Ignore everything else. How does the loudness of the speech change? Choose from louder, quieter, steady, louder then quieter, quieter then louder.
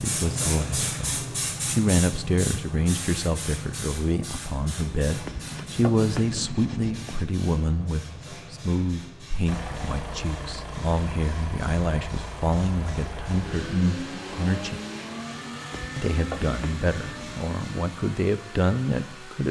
steady.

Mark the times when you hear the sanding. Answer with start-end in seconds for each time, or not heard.
5.2-7.3, 15.7-17.4.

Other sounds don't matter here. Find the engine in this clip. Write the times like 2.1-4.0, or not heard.
9.4-19.4.